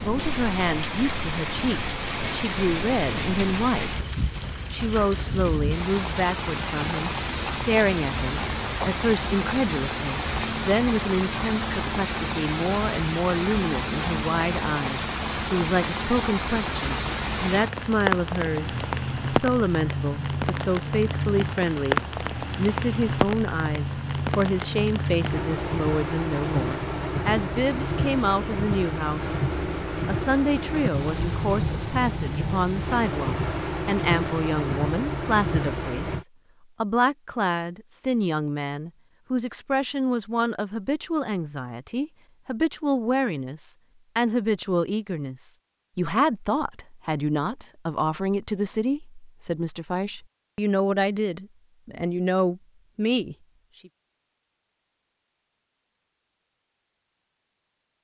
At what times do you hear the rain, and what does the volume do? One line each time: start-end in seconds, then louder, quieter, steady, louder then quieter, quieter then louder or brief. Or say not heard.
0.0-36.2 steady.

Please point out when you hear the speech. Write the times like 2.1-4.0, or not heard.
0.0-4.0, 4.7-29.4, 30.1-53.9.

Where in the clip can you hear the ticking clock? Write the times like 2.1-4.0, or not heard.
not heard.